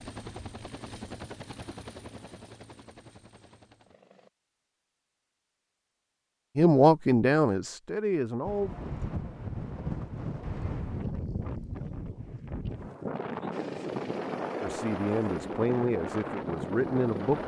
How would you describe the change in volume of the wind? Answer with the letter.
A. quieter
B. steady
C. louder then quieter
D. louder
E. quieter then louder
B.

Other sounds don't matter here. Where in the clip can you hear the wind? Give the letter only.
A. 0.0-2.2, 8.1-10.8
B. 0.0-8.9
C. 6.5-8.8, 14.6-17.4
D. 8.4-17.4
D.